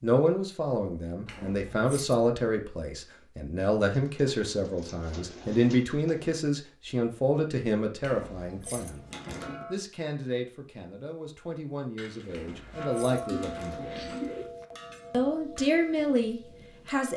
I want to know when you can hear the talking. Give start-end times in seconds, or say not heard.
0.0-9.1, 9.7-14.1, 15.1-17.1.